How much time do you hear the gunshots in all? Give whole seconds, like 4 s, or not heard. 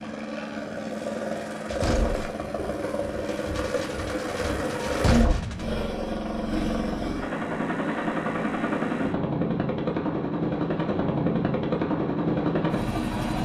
4 s.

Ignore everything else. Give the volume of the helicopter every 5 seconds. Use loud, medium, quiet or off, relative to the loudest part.
medium, loud, loud.